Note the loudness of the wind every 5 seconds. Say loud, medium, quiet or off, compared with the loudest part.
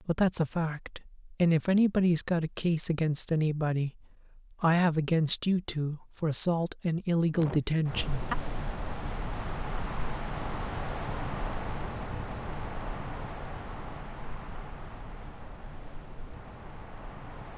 off, loud, loud, medium.